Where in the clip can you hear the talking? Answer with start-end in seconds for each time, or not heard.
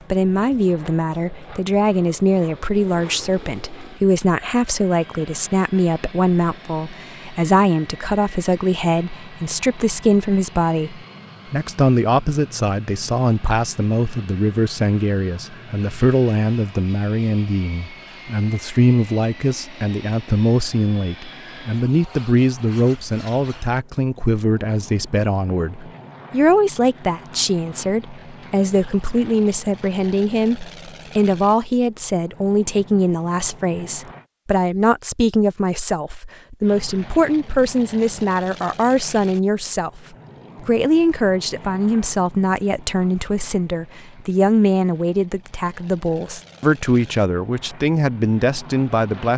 0.1-40.0, 40.6-49.3.